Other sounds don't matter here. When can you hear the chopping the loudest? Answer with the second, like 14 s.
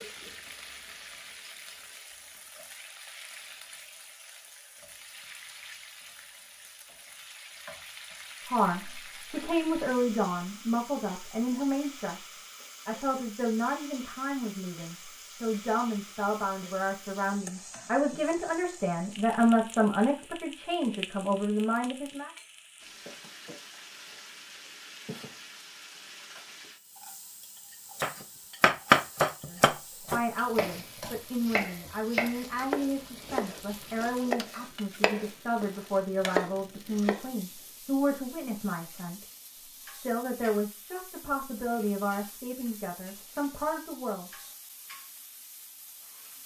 29 s.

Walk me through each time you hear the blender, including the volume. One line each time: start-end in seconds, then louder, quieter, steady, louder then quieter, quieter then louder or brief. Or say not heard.
not heard.